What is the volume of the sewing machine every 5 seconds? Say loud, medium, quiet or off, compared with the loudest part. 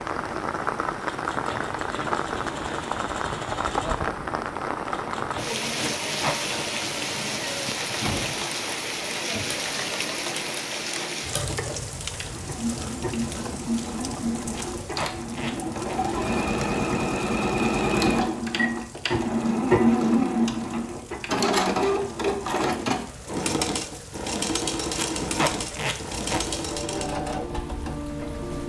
quiet, quiet, medium, loud, loud, medium.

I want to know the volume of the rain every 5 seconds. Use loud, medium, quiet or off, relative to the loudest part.
loud, loud, medium, quiet, quiet, medium.